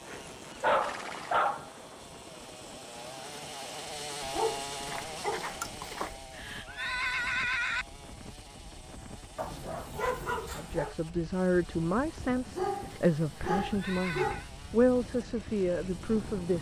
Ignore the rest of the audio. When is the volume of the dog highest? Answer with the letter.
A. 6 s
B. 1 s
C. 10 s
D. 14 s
B.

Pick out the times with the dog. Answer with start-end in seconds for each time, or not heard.
0.1-1.7, 4.2-6.2, 9.3-10.9, 12.6-14.4.